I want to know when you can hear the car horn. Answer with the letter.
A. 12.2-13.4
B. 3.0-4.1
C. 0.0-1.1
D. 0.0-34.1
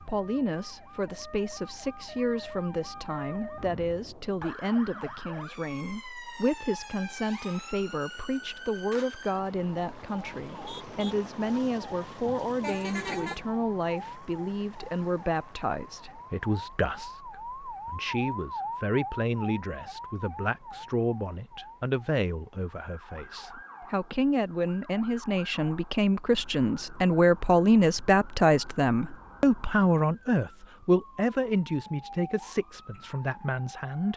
A.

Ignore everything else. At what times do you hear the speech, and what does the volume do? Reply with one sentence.
The speech can be heard from 0.0 to 34.1 s, getting louder.